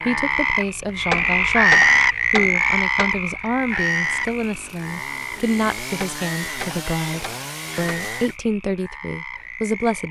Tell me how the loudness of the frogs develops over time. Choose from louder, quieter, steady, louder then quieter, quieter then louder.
quieter.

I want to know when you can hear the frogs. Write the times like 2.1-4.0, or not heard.
0.0-10.0.